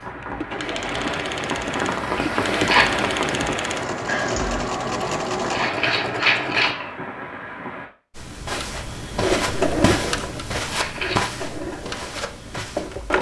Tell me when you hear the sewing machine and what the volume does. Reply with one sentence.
The sewing machine can be heard from 0.0 to 6.8 s, at a steady volume; and from 8.5 to 13.1 s, getting quieter.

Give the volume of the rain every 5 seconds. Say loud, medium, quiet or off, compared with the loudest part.
loud, medium, off.